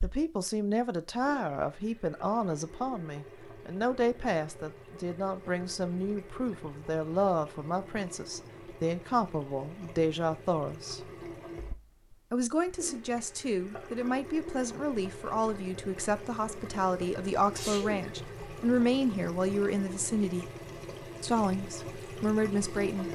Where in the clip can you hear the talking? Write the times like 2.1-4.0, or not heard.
0.0-11.1, 12.3-20.5, 21.2-23.1.